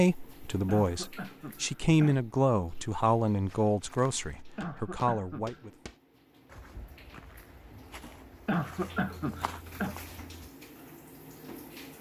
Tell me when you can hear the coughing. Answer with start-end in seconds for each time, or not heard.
0.2-2.2, 4.1-5.6, 8.0-9.9.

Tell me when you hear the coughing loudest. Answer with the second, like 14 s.
9 s.